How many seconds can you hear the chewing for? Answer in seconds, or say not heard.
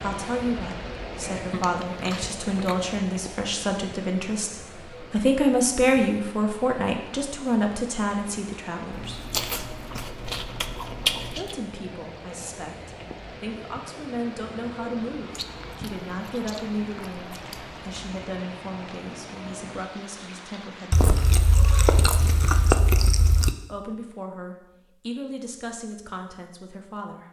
9 s.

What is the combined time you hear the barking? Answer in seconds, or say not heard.
not heard.